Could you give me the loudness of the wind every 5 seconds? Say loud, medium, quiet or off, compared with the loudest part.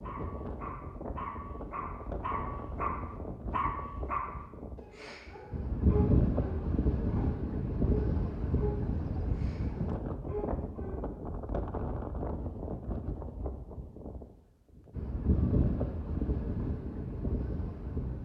medium, loud, medium, loud.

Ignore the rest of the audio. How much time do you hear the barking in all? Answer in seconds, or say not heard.
11 s.